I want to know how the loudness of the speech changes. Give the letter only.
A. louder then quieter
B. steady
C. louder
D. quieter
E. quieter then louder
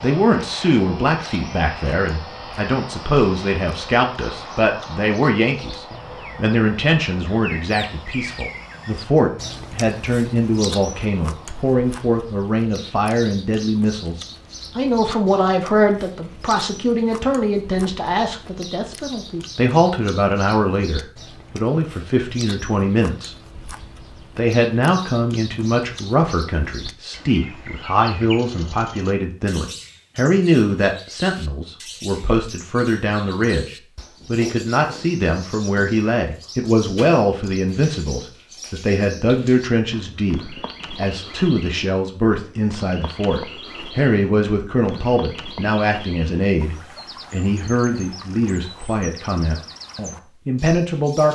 B.